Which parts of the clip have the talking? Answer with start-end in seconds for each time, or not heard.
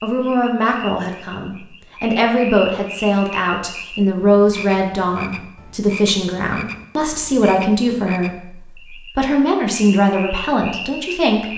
0.0-11.5.